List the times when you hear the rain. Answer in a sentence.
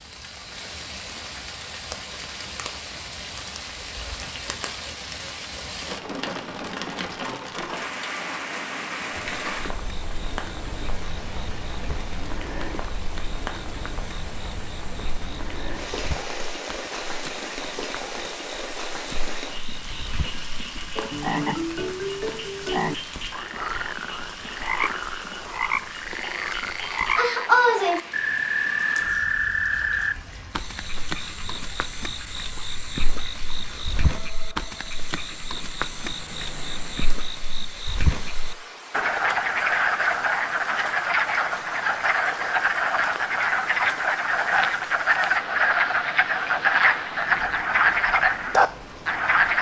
The rain can be heard from 0.0 to 49.5 s.